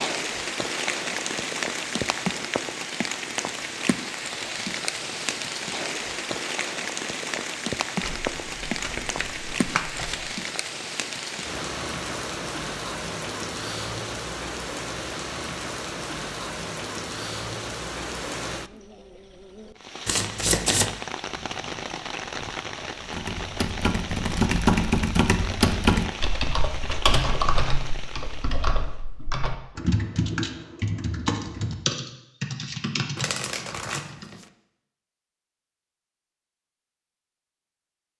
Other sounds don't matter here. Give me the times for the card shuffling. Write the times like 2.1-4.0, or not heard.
8.0-10.3, 20.1-20.9, 33.1-34.5.